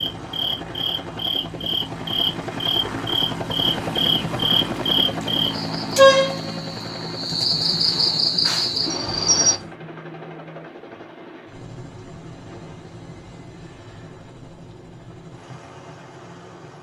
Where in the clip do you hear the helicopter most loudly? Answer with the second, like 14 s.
4 s.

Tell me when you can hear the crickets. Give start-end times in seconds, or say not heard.
0.0-9.6.